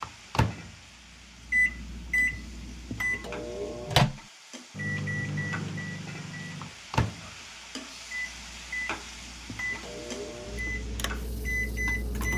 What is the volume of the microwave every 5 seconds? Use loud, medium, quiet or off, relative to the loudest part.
loud, medium, medium.